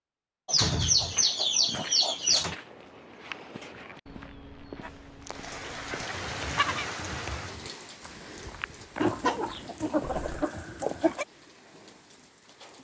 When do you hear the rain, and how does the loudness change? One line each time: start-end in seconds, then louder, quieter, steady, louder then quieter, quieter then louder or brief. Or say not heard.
5.2-12.7 quieter.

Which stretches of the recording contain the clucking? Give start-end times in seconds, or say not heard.
0.5-2.5, 4.8-6.8, 9.0-11.2.